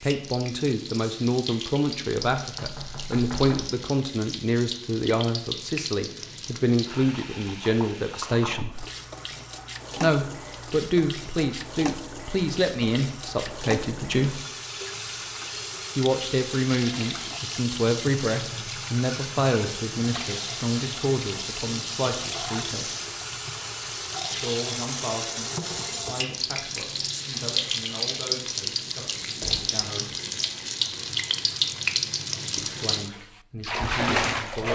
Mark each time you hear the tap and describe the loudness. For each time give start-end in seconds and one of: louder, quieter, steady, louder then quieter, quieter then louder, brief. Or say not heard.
0.0-34.6 louder.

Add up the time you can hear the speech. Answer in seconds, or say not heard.
28 s.